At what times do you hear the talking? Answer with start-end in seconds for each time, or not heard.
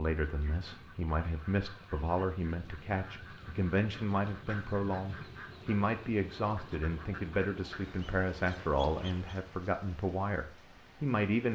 0.0-11.5.